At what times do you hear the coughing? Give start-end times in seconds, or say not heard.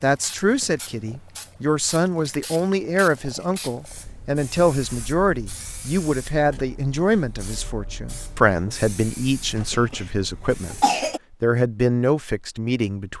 2.2-2.8, 9.7-11.2.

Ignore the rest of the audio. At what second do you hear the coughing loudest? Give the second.
11 s.